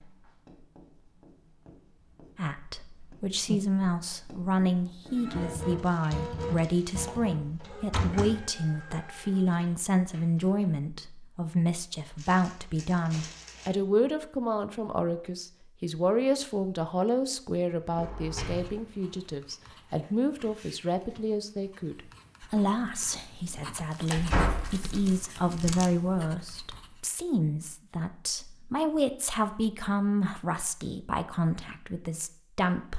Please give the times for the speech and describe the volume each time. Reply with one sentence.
You can hear the speech from 2.4 to 32.9 s, at a steady volume.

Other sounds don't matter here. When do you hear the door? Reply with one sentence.
The door can be heard from 7.4 to 8.4 s, from 17.9 to 19.1 s and from 24.1 to 25.8 s.